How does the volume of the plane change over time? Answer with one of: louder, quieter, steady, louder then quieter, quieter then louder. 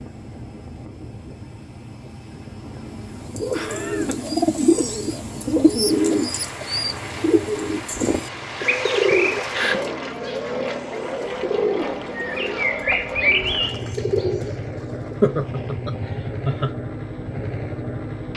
louder.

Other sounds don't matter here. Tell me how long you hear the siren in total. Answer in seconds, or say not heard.
not heard.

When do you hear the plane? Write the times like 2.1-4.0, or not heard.
0.0-18.3.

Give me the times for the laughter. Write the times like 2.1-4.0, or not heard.
3.5-4.3, 9.1-9.8, 15.2-16.8.